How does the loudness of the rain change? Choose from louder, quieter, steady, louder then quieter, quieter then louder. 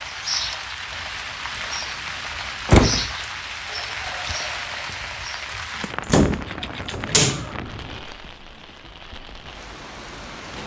quieter.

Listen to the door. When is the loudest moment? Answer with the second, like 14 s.
3 s.